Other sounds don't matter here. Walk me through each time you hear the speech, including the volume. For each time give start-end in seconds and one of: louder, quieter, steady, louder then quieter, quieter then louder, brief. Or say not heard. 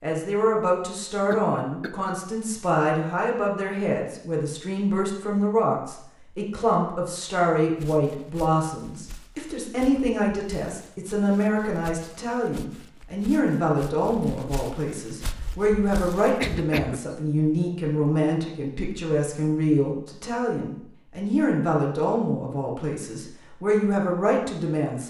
0.0-25.0 steady.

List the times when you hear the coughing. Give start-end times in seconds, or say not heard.
1.3-2.0, 16.2-17.2.